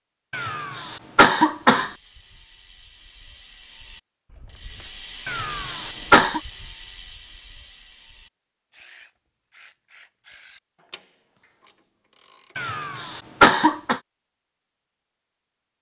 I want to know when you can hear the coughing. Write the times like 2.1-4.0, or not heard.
0.3-1.9, 5.2-6.4, 12.6-14.0.